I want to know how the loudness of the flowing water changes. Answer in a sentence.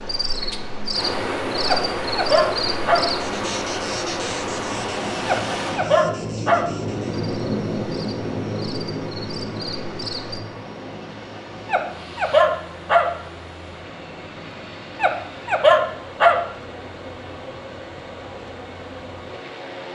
The loudness of the flowing water goes down.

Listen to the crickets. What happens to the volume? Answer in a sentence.
The loudness of the crickets goes down, then up.